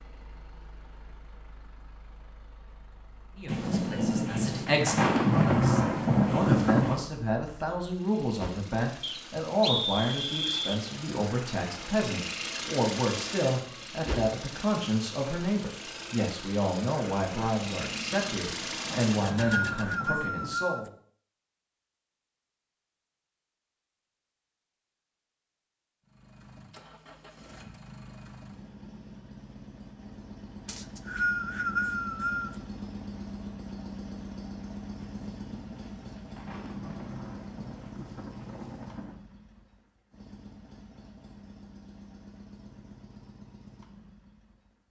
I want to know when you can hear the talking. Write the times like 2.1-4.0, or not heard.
3.4-20.9.